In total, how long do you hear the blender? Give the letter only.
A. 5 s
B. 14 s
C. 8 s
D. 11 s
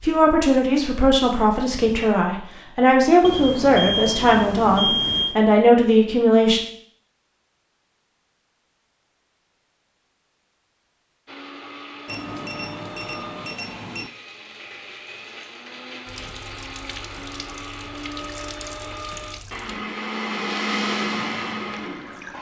D.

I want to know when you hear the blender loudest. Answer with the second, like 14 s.
21 s.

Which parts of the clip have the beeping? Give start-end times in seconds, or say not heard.
3.2-5.4, 12.1-14.1.